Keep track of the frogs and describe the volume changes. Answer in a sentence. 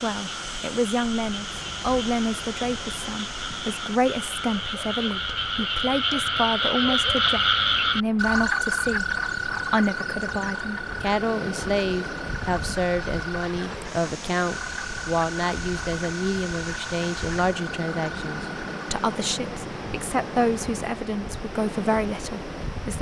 The loudness of the frogs goes up, then down.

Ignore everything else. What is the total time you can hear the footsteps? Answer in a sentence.
You can't hear the footsteps here.